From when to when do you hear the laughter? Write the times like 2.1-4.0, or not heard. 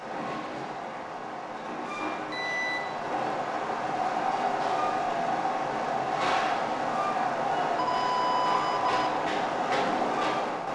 not heard.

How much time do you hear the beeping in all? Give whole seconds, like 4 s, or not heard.
2 s.